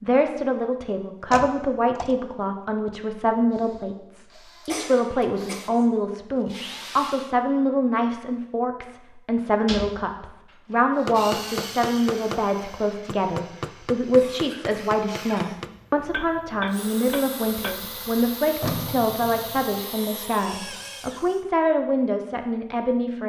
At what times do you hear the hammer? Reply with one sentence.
You can hear the hammer from 11.1 to 17.8 s.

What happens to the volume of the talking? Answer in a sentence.
The volume of the talking stays about the same.